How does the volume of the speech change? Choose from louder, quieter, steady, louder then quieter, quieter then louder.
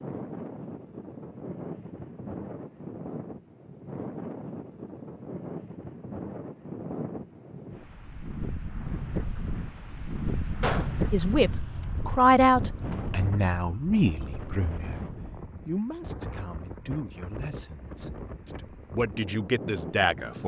quieter then louder.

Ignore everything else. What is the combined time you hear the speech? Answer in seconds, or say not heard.
9 s.